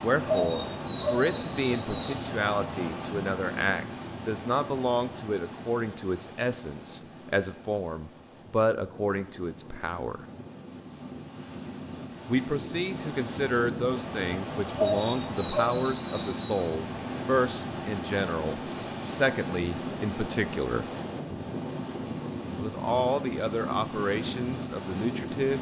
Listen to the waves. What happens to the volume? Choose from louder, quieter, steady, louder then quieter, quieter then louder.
quieter then louder.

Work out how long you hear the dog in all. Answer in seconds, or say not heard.
4 s.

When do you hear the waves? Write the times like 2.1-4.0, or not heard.
0.0-25.5.